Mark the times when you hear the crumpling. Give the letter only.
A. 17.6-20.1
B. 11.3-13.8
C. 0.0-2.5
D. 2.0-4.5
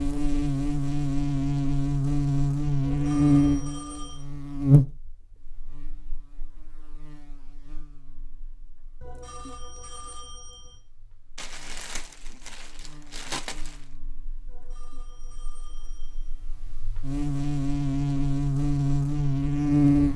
B.